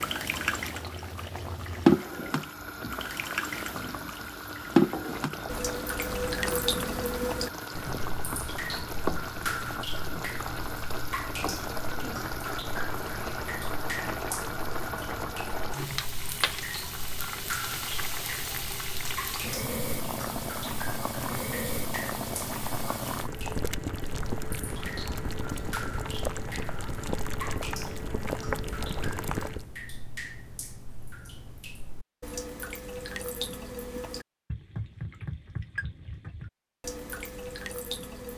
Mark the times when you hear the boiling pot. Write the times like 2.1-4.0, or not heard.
0.0-29.6.